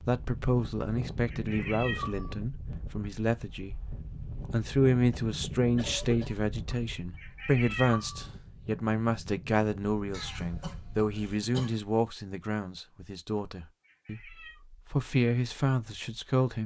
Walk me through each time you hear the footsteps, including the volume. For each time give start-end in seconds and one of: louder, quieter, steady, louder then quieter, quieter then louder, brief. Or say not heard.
not heard.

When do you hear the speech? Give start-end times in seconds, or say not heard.
0.0-16.6.